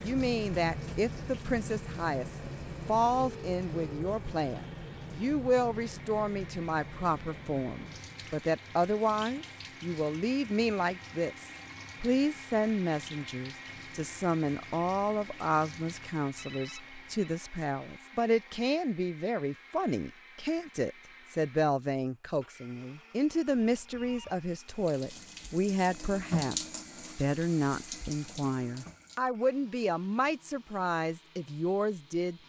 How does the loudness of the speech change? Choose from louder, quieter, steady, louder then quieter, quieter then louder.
steady.